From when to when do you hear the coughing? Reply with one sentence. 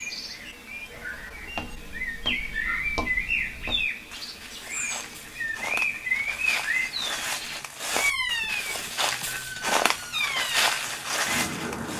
The coughing can't be heard in this clip.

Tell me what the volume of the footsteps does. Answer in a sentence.
The loudness of the footsteps goes up.